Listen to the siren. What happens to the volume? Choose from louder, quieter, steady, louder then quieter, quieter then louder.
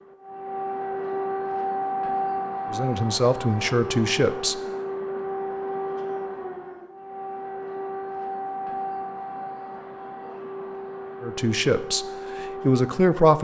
quieter.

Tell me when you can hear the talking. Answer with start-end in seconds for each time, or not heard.
2.7-4.6, 11.2-13.3.